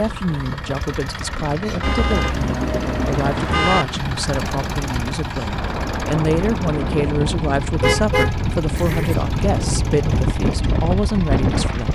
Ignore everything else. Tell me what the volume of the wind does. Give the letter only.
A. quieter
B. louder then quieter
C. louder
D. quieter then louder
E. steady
C.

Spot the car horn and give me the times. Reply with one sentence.
The car horn can be heard from 1.8 to 3.9 s and from 7.8 to 9.2 s.